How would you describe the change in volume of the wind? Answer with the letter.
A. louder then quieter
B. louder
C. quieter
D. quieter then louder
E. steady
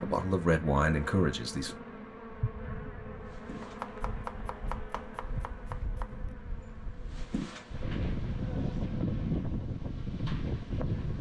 B.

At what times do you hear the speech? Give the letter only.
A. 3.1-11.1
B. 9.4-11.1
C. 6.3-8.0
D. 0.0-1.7
D.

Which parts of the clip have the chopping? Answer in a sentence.
The chopping can be heard from 3.6 to 6.3 s.